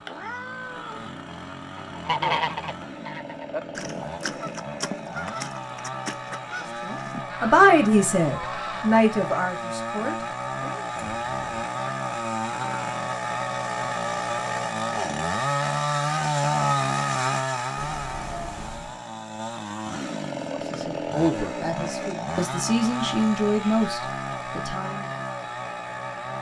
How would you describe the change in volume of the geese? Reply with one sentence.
The volume of the geese goes down.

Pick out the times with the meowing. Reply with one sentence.
The meowing can be heard from 0.1 to 1.1 s, from 10.9 to 11.5 s and from 17.8 to 19.0 s.